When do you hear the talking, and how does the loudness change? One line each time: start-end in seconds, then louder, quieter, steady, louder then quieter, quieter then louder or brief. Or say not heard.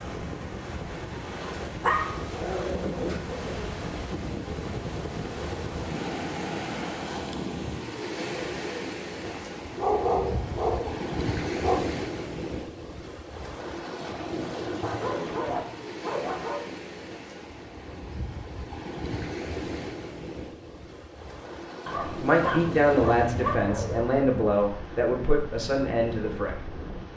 22.1-27.1 quieter.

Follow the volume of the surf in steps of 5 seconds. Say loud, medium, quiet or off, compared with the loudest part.
loud, loud, loud, loud, medium, medium.